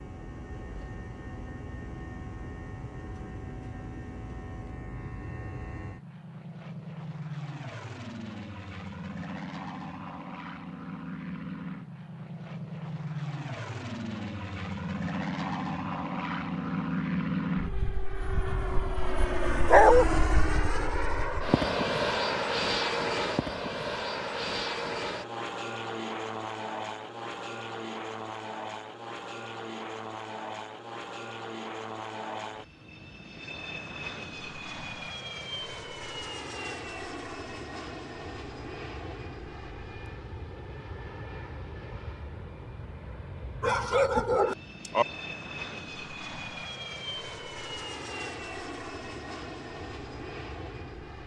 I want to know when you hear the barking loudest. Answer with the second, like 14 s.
20 s.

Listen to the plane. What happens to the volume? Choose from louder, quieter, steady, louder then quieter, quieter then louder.
louder then quieter.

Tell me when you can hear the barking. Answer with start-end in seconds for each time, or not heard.
19.6-20.1, 43.6-45.0.